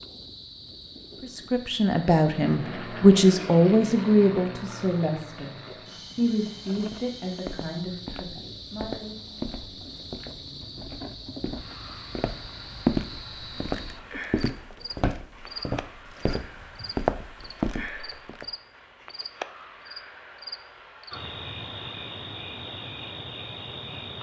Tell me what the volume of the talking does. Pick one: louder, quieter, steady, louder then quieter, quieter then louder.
quieter.